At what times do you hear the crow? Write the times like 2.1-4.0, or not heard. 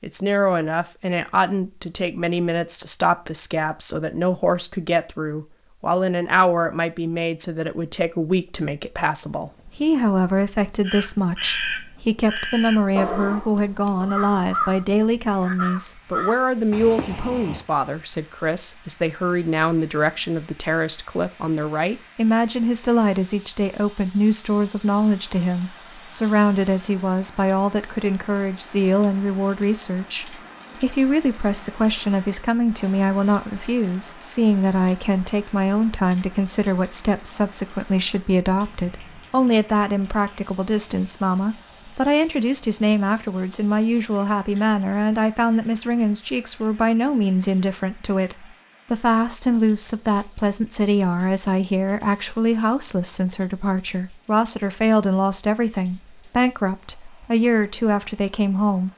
10.8-17.6.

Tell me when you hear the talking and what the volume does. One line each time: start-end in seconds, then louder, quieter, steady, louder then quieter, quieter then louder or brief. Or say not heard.
0.0-58.9 steady.